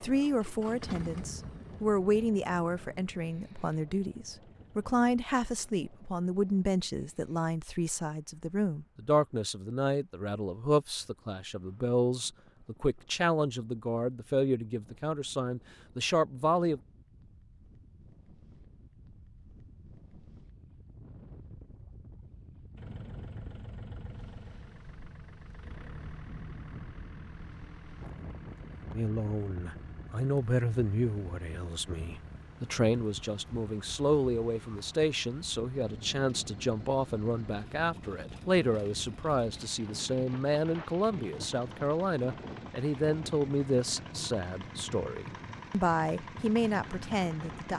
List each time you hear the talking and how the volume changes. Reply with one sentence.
You can hear the talking from 0.0 to 16.8 s, at a steady volume; and from 28.9 to 47.7 s, at a steady volume.